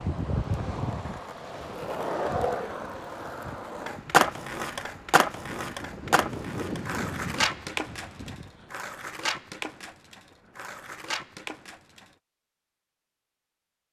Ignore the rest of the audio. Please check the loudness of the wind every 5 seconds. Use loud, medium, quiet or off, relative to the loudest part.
loud, loud, off.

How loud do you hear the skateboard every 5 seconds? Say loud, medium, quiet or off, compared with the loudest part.
loud, loud, medium.